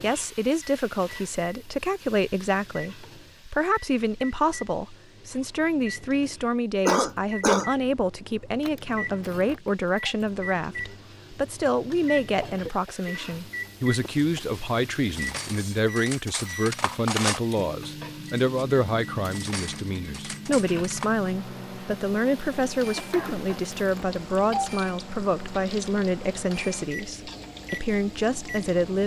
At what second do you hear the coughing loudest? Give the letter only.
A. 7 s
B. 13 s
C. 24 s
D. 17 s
A.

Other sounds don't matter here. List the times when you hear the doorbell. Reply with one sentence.
The doorbell can be heard from 8.6 to 10.2 s and from 23.1 to 24.7 s.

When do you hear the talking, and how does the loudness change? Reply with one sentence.
The talking can be heard from 0.0 to 29.0 s, at a steady volume.